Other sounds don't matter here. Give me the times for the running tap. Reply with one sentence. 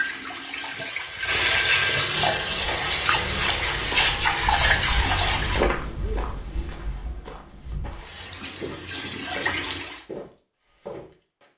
You can hear the running tap from 0.0 to 5.7 s and from 8.0 to 10.1 s.